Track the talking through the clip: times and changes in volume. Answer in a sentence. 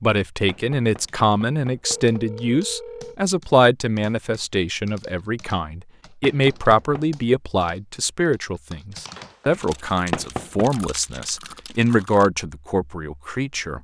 You can hear the talking from 0.0 to 13.7 s, at a steady volume.